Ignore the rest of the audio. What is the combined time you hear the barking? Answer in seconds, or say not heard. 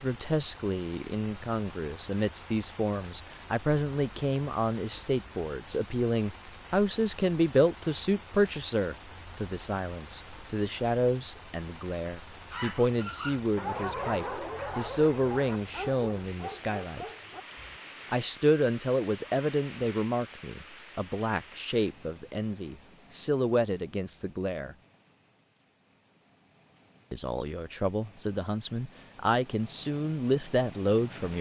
5 s.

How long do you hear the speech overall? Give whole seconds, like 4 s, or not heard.
28 s.